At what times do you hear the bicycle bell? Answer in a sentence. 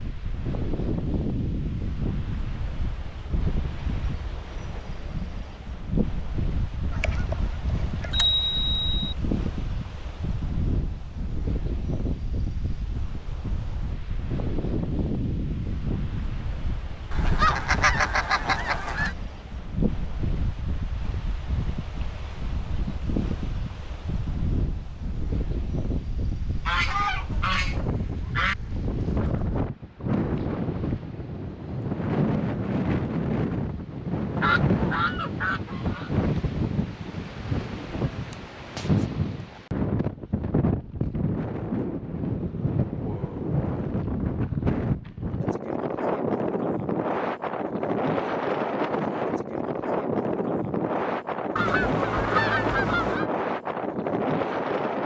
You can hear the bicycle bell from 8.1 to 9.0 s.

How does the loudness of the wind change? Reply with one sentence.
The loudness of the wind goes up.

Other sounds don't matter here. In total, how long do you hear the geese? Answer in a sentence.
The geese can be heard for 9 seconds in total.